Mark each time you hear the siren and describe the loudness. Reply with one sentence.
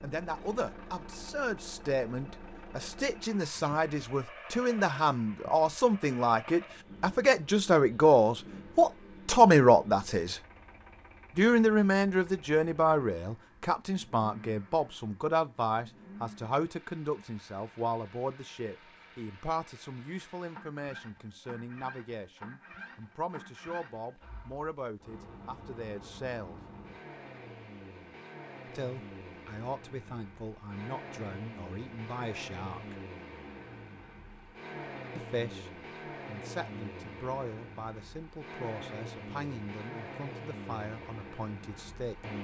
The siren can't be heard in this clip.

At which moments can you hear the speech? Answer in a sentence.
You can hear the speech from 0.0 to 10.4 s, from 11.3 to 26.6 s, from 28.6 to 33.0 s and from 35.1 to 42.2 s.